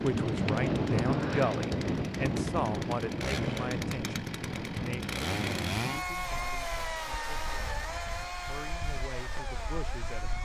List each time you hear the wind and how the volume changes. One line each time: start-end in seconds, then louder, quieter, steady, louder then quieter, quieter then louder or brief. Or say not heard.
0.0-10.4 quieter.